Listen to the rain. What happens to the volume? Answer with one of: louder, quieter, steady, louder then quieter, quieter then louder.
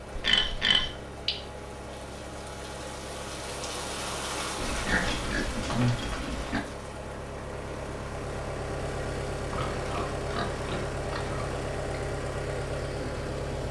louder then quieter.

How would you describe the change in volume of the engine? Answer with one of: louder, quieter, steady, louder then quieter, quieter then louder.
louder.